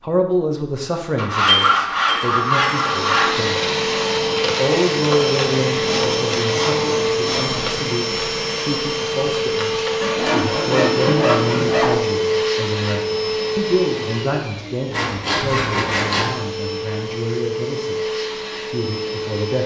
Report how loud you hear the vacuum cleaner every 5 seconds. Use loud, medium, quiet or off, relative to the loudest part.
loud, loud, loud, medium.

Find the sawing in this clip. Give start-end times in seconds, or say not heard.
1.1-3.4, 5.7-7.9, 10.0-11.9, 14.9-16.4.